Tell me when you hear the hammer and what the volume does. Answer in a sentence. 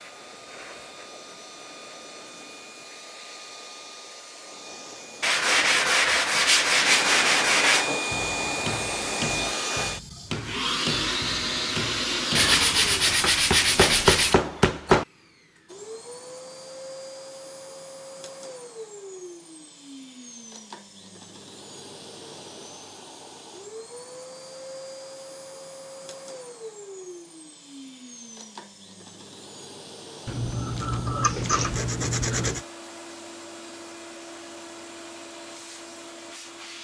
The hammer can be heard from 7.8 to 15.1 s, getting louder.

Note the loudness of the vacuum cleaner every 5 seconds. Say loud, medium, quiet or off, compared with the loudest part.
quiet, loud, loud, quiet, quiet, quiet, quiet, quiet.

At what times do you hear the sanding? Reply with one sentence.
You can hear the sanding from 5.2 to 7.9 s, from 12.3 to 14.3 s and from 30.2 to 32.6 s.